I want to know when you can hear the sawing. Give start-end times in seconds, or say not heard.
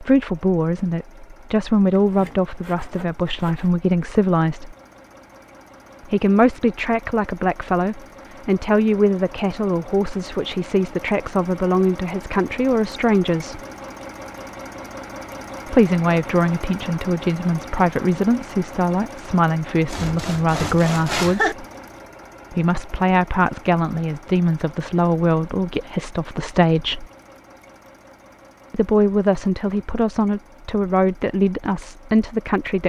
1.9-3.7, 19.9-21.6.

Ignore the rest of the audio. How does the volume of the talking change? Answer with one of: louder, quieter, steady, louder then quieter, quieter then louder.
steady.